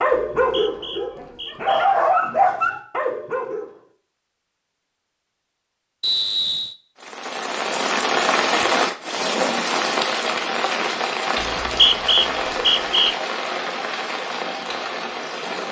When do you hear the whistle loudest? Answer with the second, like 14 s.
12 s.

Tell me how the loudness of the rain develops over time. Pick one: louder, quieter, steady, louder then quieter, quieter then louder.
quieter.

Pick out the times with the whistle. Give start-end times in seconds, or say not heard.
0.3-1.9, 6.0-6.8, 11.4-13.2.